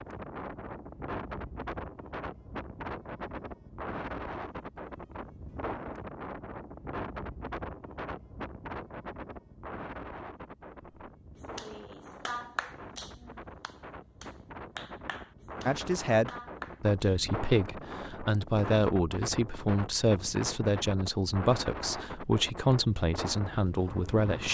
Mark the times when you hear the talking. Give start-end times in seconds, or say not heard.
15.7-24.4.